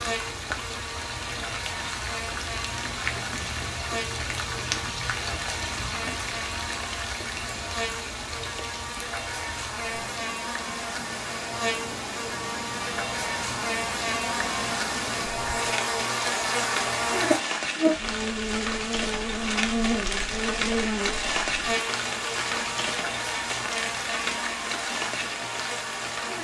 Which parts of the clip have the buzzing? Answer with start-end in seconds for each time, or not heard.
0.0-26.3.